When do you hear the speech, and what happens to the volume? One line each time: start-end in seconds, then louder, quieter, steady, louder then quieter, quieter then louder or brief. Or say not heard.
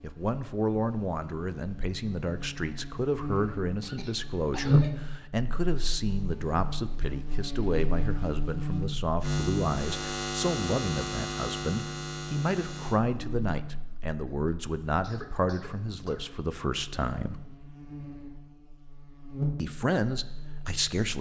0.0-17.4 steady
19.6-21.1 brief.